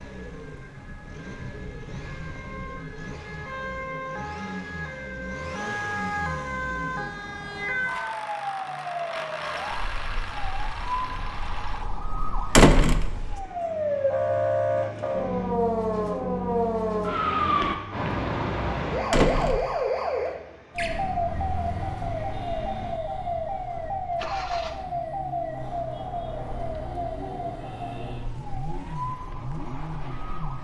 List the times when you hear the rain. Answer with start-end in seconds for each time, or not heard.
not heard.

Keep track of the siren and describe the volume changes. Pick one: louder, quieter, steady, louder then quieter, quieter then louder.
louder then quieter.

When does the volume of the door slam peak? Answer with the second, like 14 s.
13 s.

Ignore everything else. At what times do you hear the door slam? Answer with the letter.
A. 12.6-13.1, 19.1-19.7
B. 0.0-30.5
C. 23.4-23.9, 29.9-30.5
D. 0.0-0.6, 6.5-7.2
A.